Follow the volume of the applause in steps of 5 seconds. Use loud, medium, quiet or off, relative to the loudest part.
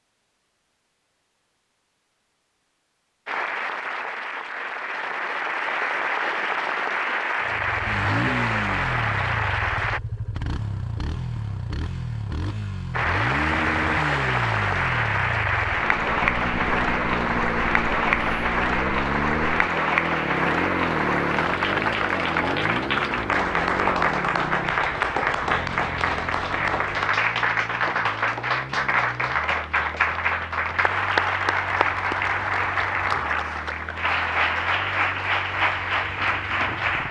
medium, loud, loud, loud, loud, loud, loud, loud.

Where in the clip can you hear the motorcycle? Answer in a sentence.
You can hear the motorcycle from 7.4 to 37.0 s.